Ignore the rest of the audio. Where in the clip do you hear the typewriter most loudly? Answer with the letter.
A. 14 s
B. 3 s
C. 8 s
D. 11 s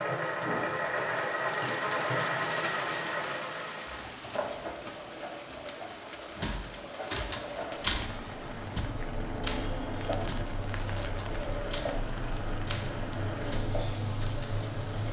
C.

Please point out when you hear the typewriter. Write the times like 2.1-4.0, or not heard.
6.4-12.1, 12.7-14.6.